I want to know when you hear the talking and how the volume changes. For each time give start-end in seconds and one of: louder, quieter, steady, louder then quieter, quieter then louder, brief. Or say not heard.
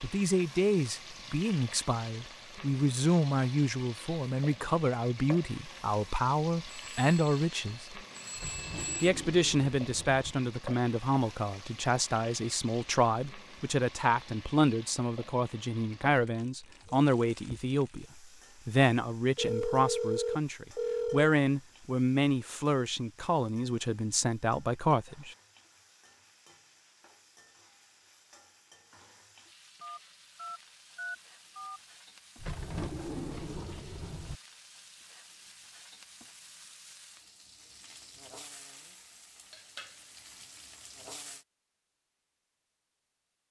0.0-8.0 steady
9.0-25.4 steady.